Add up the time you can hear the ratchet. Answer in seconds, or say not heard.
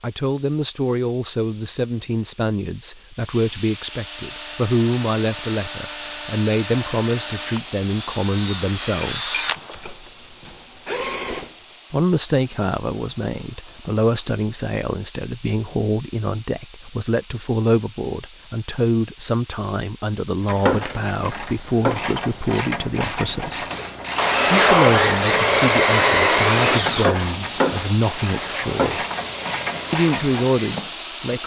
10 s.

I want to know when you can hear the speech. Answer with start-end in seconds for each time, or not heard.
0.0-9.4, 11.9-23.6, 24.5-29.1, 29.9-31.4.